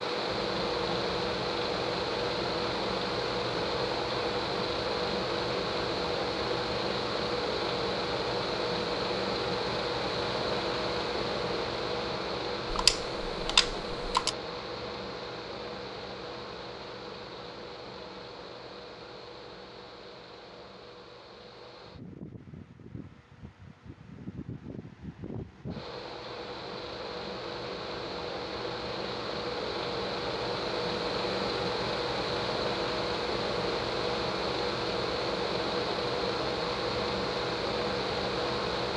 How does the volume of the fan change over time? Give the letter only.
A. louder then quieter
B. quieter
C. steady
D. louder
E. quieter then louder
E.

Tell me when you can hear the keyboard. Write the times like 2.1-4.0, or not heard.
12.7-14.3.